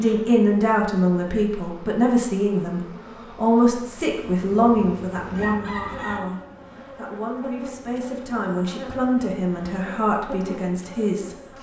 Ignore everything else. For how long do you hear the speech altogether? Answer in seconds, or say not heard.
11 s.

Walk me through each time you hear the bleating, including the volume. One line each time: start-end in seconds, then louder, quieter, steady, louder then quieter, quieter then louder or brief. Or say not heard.
not heard.